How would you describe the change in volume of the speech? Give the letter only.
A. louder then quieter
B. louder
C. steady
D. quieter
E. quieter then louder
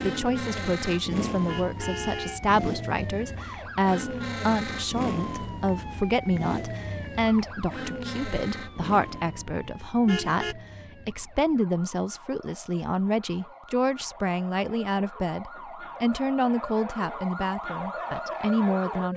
C.